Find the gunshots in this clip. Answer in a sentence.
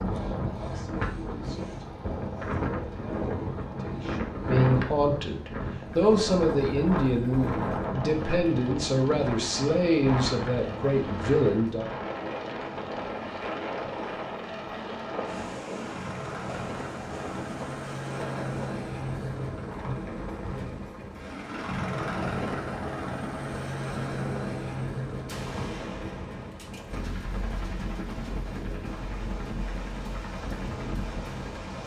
You can hear the gunshots from 25.2 to 27.1 s.